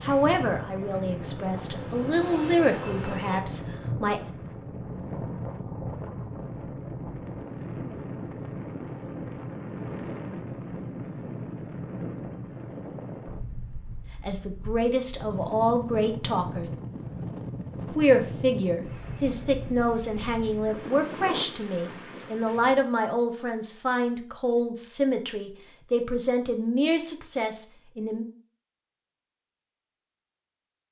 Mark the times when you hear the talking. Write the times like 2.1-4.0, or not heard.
0.0-4.2, 14.2-16.7, 17.9-28.2.